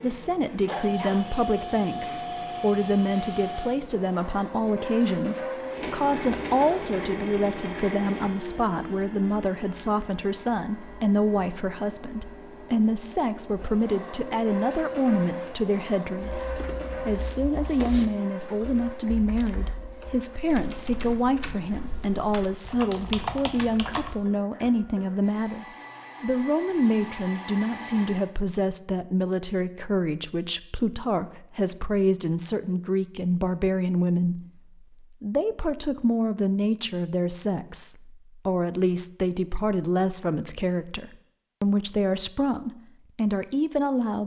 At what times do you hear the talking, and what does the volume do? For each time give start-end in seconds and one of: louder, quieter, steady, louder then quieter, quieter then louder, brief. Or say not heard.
0.0-44.2 steady.